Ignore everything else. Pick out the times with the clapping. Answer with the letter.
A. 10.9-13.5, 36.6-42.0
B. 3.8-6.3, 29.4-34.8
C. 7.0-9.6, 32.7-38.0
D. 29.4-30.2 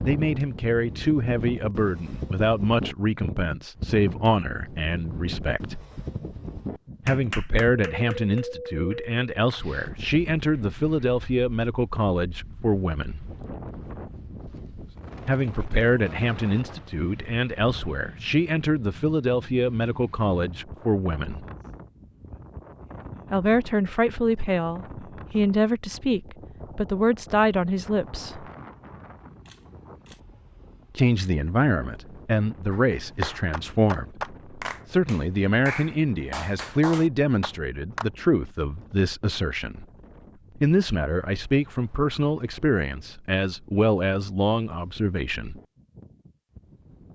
C.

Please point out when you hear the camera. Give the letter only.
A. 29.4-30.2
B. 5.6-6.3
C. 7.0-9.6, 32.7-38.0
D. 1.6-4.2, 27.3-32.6
A.